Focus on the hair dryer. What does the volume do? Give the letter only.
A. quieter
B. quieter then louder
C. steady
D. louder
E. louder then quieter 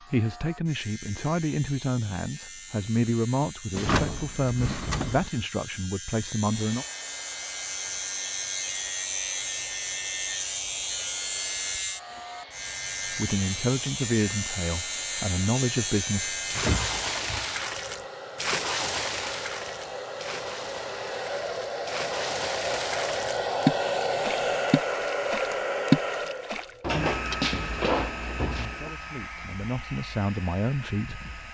E.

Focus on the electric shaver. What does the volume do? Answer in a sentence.
The loudness of the electric shaver goes up.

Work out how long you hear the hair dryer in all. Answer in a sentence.
The hair dryer can be heard for 25 seconds in total.